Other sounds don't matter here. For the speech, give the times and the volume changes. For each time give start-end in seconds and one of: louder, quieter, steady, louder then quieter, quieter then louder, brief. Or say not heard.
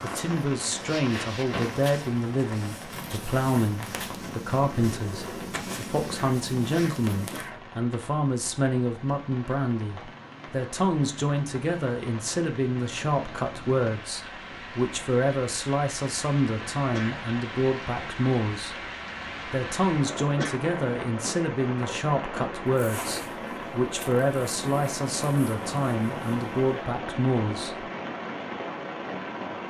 0.0-18.9 steady
19.4-27.9 steady.